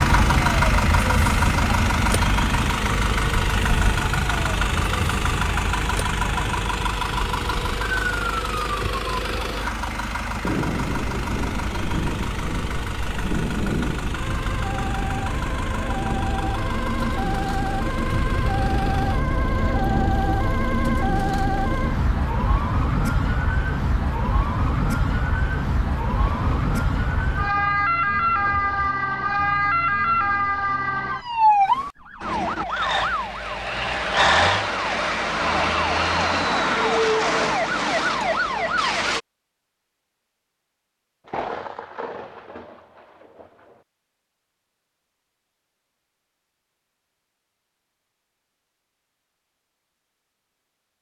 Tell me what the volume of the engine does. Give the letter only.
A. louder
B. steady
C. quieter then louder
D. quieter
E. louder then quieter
D.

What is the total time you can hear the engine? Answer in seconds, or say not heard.
22 s.